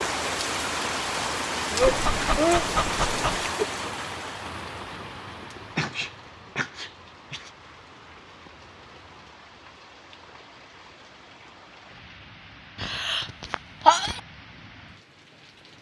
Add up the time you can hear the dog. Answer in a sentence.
The dog can be heard for 2 seconds in total.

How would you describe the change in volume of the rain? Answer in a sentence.
The loudness of the rain goes down.